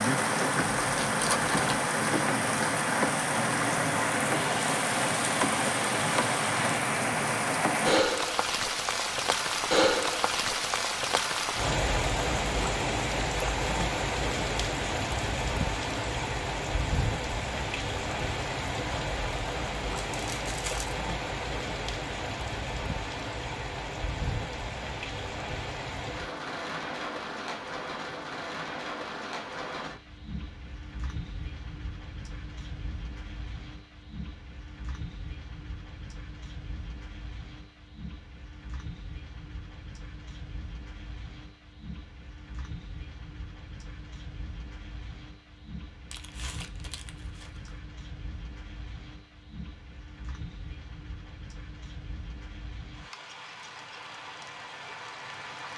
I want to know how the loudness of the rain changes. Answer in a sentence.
The loudness of the rain goes down.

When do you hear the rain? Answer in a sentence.
You can hear the rain from 0.0 to 55.7 s.